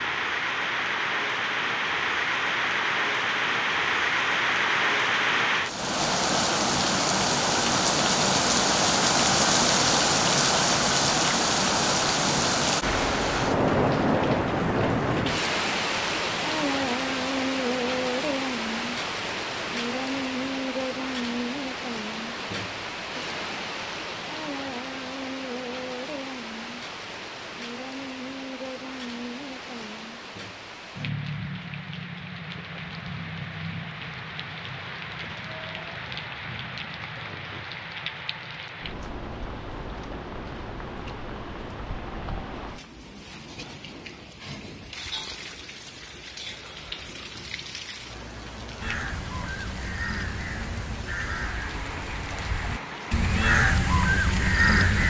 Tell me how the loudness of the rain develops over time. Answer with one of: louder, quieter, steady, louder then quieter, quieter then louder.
quieter.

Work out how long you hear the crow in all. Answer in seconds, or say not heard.
6 s.